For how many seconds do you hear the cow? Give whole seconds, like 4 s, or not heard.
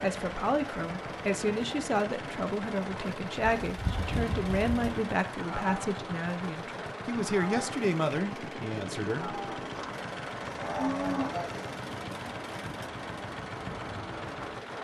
3 s.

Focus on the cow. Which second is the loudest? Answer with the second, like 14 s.
11 s.